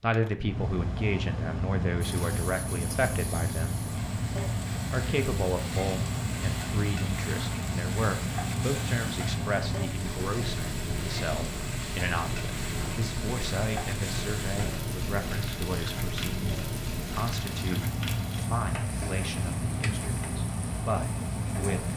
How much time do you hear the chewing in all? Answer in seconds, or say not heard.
not heard.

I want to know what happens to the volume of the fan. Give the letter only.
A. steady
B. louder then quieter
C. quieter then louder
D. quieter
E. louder
A.